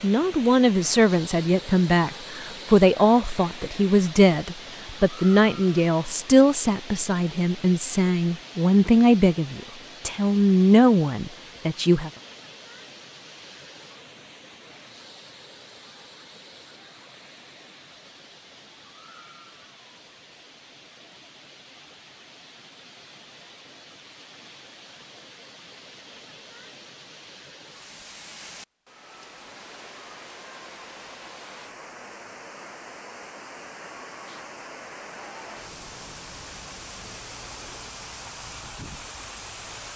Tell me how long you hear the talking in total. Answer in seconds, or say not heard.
12 s.